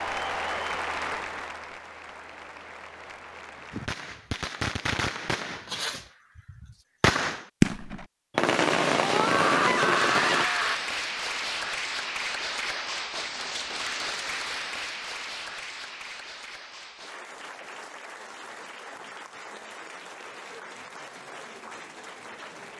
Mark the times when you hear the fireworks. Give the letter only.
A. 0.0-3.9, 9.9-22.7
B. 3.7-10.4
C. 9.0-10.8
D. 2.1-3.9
B.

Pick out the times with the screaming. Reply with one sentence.
The screaming can be heard from 9.0 to 10.8 s.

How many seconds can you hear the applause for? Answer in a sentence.
You can hear the applause for 17 seconds altogether.